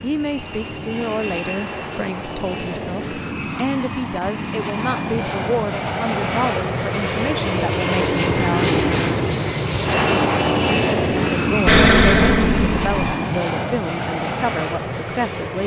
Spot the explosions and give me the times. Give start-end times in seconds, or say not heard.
11.7-12.9.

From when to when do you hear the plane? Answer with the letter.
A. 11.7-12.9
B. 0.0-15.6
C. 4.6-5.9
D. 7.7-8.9
B.